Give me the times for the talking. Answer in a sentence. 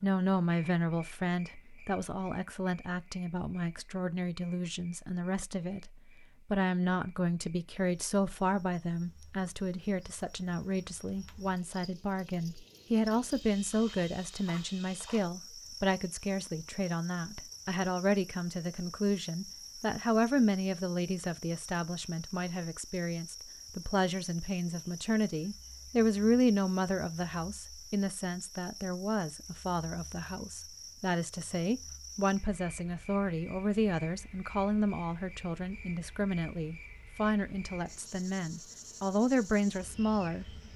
The talking can be heard from 0.0 to 5.9 s and from 6.5 to 40.5 s.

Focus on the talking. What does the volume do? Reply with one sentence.
The volume of the talking stays about the same.